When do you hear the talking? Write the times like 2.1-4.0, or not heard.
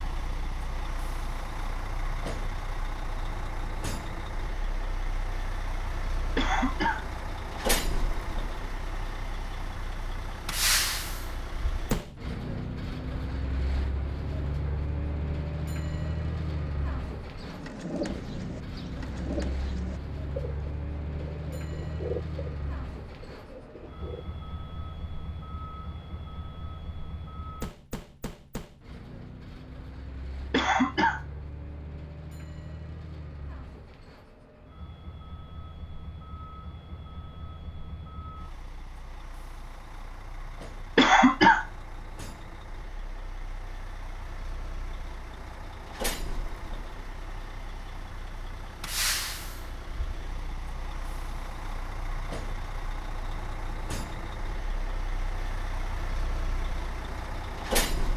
not heard.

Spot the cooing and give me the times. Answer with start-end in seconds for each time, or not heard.
17.4-24.2.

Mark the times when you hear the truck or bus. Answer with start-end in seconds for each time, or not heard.
0.0-58.1.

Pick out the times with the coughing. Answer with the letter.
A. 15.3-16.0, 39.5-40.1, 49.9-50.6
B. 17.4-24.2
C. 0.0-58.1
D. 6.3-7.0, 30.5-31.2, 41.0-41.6
D.